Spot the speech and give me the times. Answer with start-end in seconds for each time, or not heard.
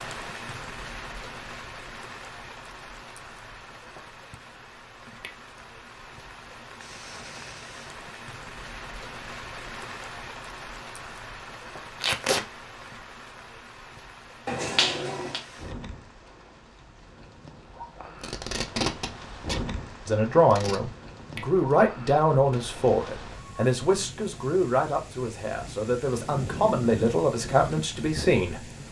20.1-28.6.